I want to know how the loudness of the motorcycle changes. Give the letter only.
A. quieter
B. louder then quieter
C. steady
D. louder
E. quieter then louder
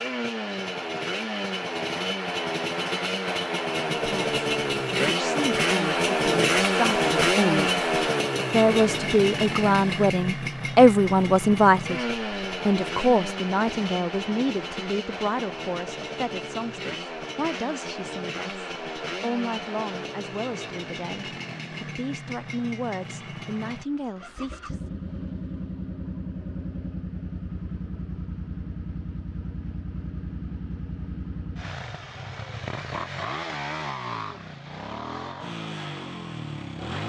A.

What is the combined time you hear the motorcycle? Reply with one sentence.
You can hear the motorcycle for 37 seconds altogether.